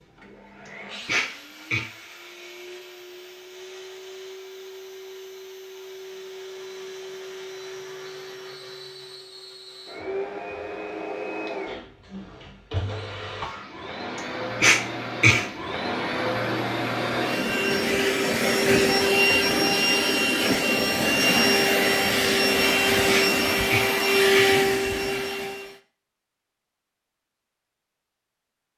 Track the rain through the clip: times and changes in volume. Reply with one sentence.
The rain can't be heard in this clip.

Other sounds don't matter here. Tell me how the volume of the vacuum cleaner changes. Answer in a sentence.
The volume of the vacuum cleaner goes up.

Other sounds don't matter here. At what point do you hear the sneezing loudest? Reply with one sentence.
The loudest moment of the sneezing is at 15 seconds.